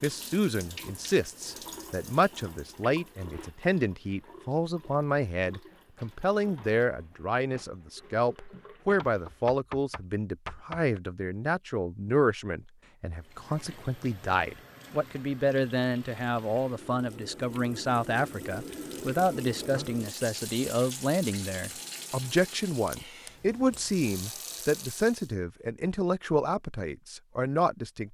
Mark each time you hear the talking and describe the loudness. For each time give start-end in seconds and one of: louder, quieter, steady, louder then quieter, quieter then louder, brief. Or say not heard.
0.0-28.0 steady.